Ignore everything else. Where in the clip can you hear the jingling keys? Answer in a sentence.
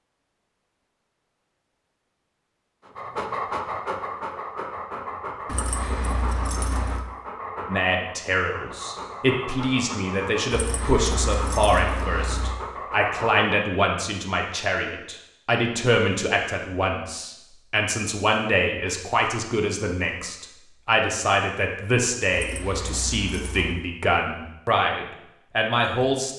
You can hear the jingling keys from 5.5 to 7.0 s, from 10.5 to 12.5 s and from 22.3 to 23.8 s.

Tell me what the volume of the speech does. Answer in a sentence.
The volume of the speech stays about the same.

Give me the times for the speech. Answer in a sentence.
The speech can be heard from 7.7 to 26.3 s.